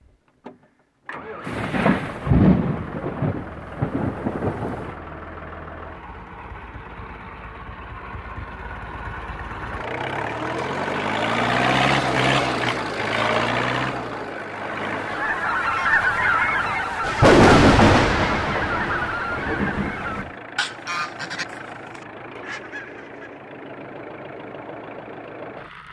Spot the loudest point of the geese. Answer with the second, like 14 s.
16 s.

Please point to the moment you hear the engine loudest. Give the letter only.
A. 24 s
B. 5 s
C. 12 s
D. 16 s
C.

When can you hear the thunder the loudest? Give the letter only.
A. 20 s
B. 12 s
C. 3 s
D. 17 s
D.